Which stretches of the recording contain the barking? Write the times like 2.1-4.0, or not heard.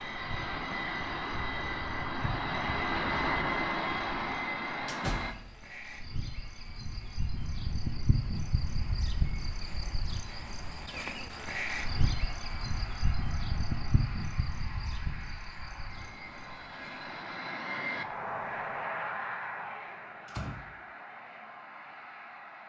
not heard.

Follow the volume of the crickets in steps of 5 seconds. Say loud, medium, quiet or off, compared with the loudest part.
medium, loud, loud, medium, off.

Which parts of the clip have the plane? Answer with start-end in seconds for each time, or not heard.
0.0-5.3, 11.3-22.6.